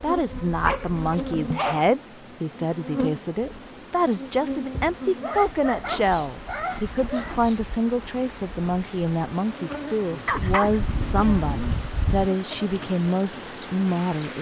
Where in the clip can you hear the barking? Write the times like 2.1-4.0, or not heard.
0.6-1.9, 5.2-7.3, 10.2-12.3.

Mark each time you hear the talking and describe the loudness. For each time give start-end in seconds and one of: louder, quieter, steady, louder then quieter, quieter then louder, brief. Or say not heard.
0.0-14.3 steady.